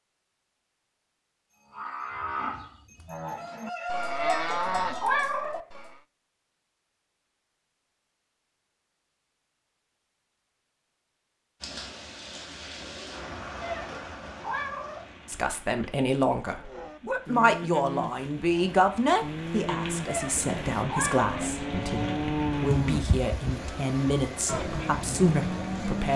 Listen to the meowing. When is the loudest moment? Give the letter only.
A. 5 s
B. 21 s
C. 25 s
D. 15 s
A.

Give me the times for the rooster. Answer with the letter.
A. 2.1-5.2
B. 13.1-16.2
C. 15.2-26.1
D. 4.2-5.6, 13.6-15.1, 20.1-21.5
A.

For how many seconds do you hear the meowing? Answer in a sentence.
The meowing can be heard for 4 seconds in total.